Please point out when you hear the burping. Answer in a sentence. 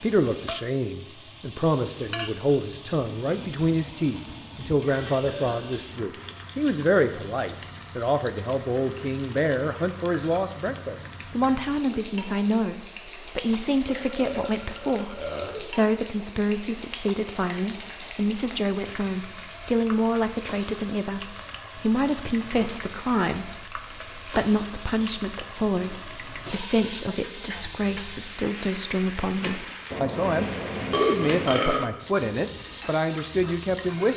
The burping can be heard from 5.2 to 5.7 s, from 13.8 to 15.7 s and from 29.9 to 31.8 s.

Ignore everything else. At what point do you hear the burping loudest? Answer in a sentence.
The loudest moment of the burping is at 31 seconds.